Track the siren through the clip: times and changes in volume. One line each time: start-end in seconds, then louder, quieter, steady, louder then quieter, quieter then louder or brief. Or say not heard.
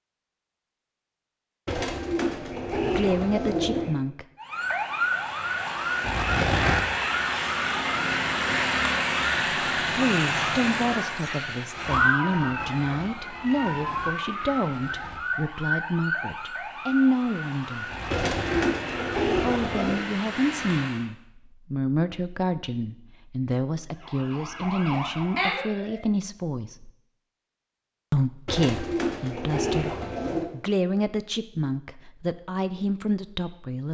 4.4-21.1 quieter
23.9-26.1 brief.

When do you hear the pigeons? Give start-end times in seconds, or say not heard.
1.6-4.0, 18.1-20.0, 28.4-30.5.